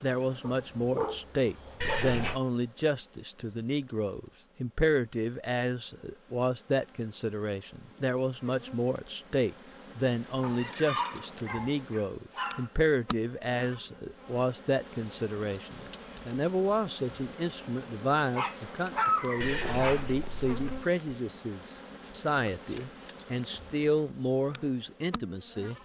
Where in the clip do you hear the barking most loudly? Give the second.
19 s.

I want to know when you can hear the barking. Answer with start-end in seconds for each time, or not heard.
0.4-2.0, 10.4-12.7, 18.4-20.0.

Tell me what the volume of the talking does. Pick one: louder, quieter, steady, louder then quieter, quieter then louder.
steady.